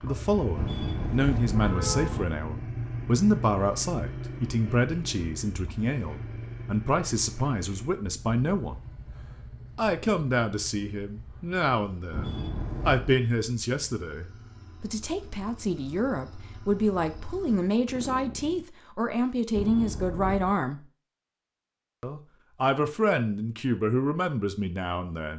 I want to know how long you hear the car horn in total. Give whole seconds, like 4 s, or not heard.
4 s.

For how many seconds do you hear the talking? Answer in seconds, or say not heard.
23 s.